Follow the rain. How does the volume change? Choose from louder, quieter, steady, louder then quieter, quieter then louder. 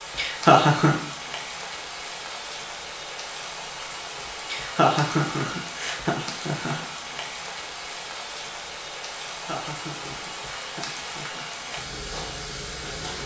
steady.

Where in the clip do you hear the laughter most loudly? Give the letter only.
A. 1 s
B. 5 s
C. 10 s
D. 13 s
A.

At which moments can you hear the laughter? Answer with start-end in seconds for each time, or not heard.
0.1-1.0, 4.5-6.8, 9.3-11.4.